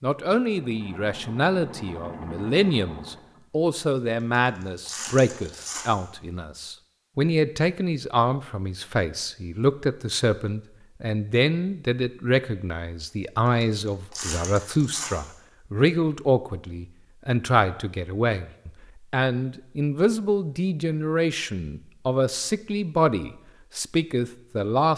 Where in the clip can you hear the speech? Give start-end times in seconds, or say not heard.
0.0-24.9.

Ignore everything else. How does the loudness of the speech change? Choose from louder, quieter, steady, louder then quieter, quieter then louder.
steady.